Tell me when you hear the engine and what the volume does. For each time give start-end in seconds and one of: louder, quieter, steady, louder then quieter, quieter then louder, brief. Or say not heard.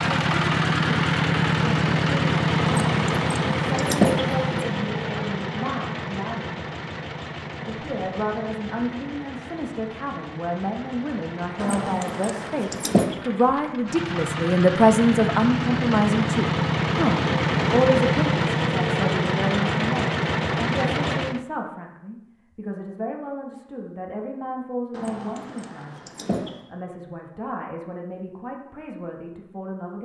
0.0-21.4 quieter then louder.